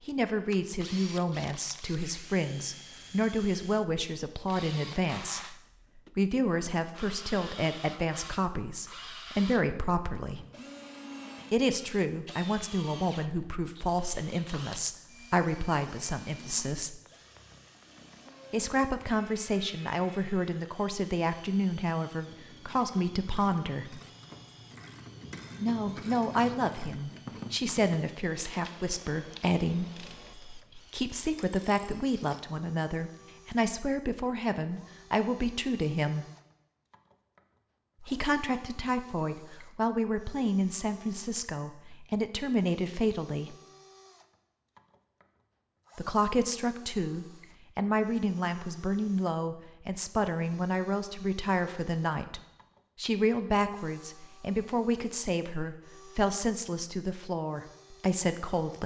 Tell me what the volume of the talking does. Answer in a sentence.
The volume of the talking stays about the same.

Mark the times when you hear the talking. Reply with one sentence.
You can hear the talking from 0.1 to 10.4 s, from 11.5 to 17.0 s, from 18.5 to 24.0 s, from 25.6 to 36.2 s, from 38.0 to 43.5 s and from 46.0 to 58.8 s.